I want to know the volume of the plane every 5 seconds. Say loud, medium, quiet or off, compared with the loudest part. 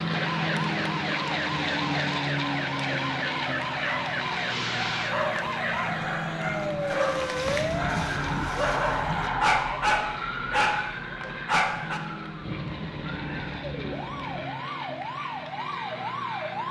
loud, medium, medium, medium.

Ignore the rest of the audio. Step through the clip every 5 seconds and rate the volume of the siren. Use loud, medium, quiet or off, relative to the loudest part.
loud, loud, medium, loud.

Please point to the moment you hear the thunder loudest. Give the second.
13 s.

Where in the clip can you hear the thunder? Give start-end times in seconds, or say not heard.
12.4-14.4.